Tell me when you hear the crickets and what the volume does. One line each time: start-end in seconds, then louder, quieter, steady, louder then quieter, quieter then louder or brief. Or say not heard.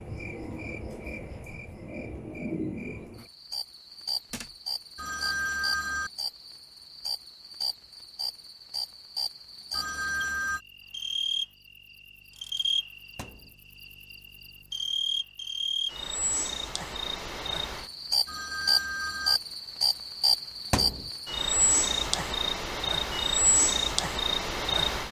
0.0-25.0 louder.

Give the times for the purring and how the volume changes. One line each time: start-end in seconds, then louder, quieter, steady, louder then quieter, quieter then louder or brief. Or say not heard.
not heard.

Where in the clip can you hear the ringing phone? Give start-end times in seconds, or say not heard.
5.0-6.1, 9.7-10.6, 18.2-19.4.